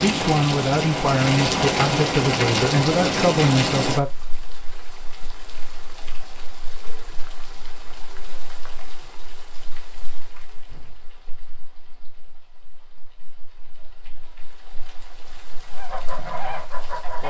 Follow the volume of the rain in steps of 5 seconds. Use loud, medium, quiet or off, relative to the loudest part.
loud, quiet, quiet, quiet.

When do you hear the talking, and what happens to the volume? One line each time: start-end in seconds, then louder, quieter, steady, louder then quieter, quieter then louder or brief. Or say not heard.
0.0-4.0 steady.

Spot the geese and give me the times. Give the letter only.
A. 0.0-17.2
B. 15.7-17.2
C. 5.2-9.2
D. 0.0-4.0
B.